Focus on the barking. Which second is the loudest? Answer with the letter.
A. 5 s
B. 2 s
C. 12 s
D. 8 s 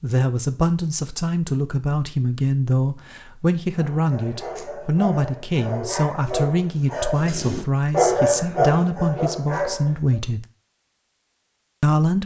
D.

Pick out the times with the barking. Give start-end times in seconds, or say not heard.
3.8-10.2.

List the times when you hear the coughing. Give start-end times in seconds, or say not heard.
not heard.